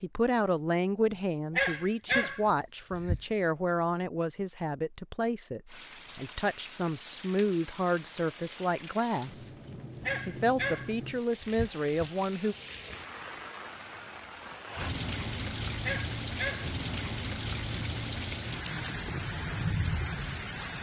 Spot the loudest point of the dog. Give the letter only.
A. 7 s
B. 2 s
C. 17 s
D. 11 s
B.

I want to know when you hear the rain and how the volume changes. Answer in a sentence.
The rain can be heard from 5.7 to 20.7 s, getting louder.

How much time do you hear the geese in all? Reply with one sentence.
You can't hear the geese here.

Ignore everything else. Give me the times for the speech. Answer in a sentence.
You can hear the speech from 0.0 to 9.6 s and from 10.2 to 12.6 s.